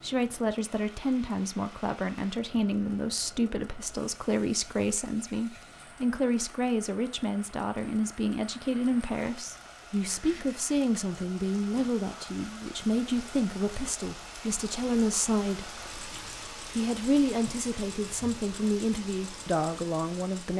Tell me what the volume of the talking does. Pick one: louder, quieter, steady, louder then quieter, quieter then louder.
steady.